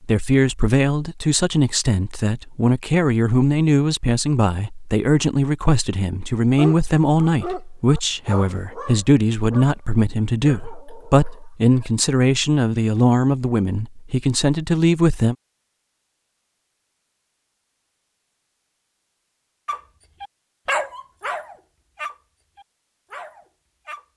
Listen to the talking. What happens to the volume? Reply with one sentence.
The volume of the talking stays about the same.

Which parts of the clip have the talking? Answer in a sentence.
You can hear the talking from 0.0 to 15.3 s.